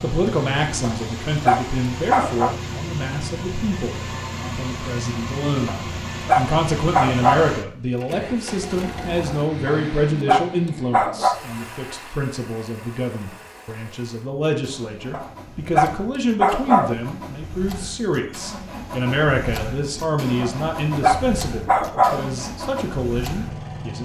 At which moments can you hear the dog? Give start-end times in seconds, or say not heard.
0.8-2.5, 5.7-7.5, 9.7-11.4, 15.1-16.9, 20.4-22.2.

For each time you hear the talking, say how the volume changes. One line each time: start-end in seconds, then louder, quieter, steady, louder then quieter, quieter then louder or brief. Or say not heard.
0.0-23.9 steady.